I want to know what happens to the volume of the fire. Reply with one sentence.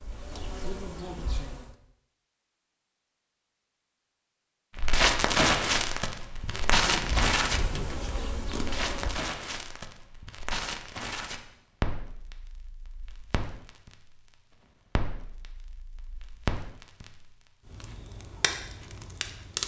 The loudness of the fire goes down, then up.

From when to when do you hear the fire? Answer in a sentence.
The fire can be heard from 4.8 to 19.6 s.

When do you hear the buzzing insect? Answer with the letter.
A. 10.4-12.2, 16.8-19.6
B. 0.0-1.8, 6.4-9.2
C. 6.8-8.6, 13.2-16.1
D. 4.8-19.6
B.